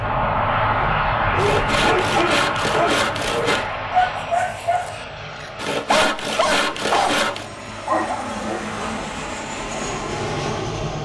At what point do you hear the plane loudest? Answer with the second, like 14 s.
1 s.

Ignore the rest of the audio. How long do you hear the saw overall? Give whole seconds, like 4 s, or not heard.
4 s.